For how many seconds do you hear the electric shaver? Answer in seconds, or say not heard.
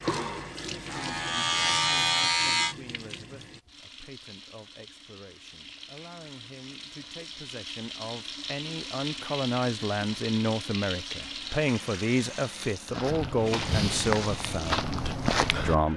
3 s.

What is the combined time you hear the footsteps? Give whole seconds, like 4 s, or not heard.
3 s.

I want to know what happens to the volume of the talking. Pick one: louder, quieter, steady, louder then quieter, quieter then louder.
louder.